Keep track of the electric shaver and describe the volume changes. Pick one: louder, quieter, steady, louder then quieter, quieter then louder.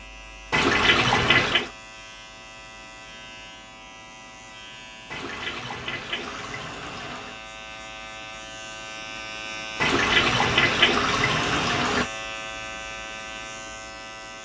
louder.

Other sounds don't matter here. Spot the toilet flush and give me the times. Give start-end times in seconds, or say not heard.
0.5-1.7, 5.1-7.4, 9.8-12.1.